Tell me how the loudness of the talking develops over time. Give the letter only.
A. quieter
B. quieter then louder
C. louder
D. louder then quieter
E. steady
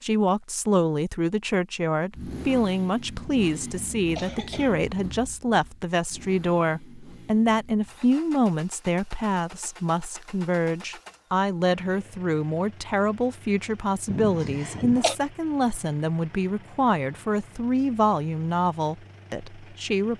E.